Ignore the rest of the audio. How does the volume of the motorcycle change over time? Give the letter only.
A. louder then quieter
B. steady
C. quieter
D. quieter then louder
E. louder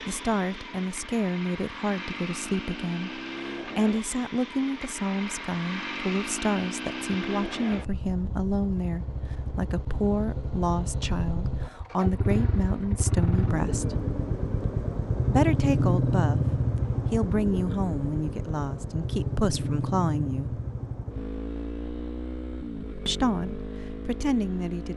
A.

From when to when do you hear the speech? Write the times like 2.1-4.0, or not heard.
0.1-13.9, 15.3-20.6, 23.1-24.9.